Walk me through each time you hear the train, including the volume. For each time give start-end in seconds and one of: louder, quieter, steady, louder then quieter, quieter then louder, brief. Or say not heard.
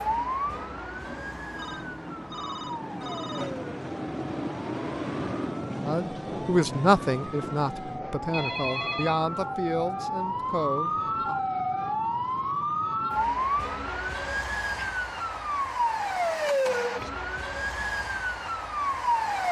0.0-11.5 louder then quieter.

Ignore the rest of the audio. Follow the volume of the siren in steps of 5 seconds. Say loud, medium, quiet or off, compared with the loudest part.
medium, medium, loud, loud.